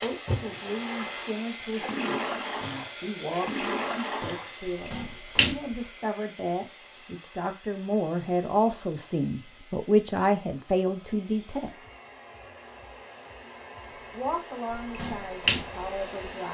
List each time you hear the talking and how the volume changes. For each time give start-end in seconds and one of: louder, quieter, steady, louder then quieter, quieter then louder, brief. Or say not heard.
0.0-11.7 louder
14.1-16.5 brief.